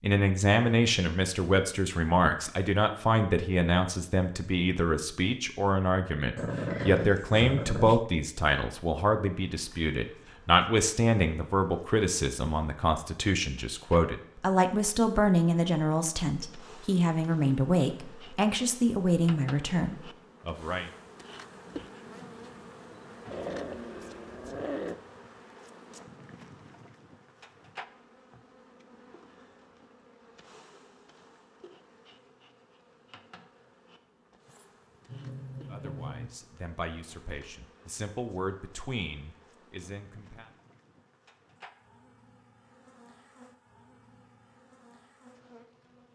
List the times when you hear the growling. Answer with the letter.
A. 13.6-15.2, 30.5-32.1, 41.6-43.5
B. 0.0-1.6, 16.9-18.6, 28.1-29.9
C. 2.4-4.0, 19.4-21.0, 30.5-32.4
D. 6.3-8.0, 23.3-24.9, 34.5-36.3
D.